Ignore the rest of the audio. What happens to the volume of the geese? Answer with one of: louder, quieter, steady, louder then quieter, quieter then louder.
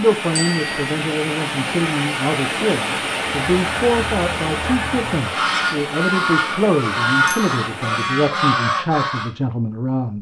louder.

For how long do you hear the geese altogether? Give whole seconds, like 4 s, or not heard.
6 s.